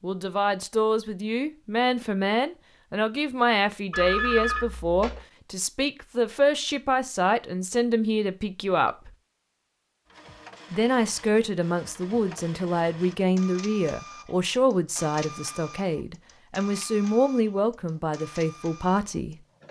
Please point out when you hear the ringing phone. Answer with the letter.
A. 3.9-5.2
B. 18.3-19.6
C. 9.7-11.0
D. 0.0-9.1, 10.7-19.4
A.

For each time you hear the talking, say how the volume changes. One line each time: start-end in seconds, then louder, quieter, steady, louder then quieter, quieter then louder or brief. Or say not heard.
0.0-9.1 steady
10.7-19.4 steady.